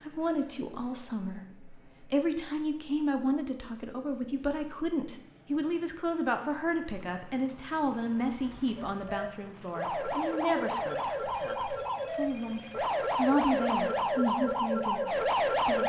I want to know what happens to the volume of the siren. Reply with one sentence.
The loudness of the siren goes up.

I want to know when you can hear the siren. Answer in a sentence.
You can hear the siren from 8.2 to 15.8 s.